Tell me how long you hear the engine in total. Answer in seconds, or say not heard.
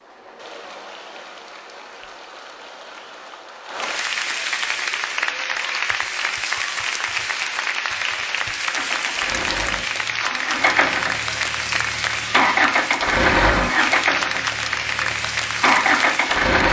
8 s.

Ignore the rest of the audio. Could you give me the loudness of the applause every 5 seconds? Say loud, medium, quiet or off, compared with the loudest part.
medium, loud, loud, loud.